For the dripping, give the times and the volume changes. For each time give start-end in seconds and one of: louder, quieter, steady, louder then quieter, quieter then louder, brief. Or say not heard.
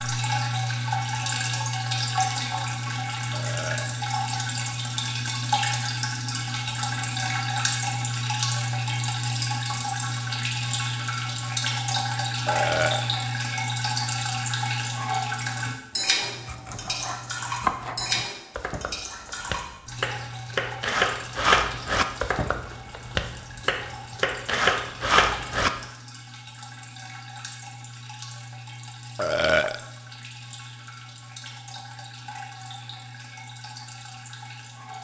0.0-34.9 quieter.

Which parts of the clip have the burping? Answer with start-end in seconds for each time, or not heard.
3.3-4.0, 12.4-13.1, 29.1-29.8.